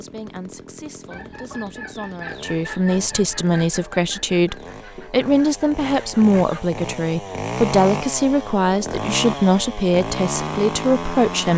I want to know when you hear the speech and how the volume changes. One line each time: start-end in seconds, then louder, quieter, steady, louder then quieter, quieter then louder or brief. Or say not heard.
0.0-11.5 louder.